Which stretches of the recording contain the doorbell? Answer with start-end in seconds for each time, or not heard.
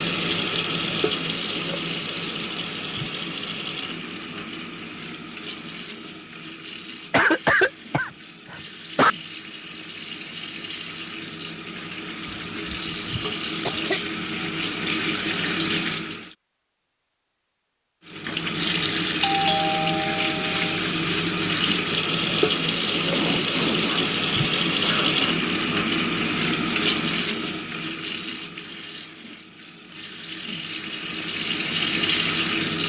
19.2-20.8.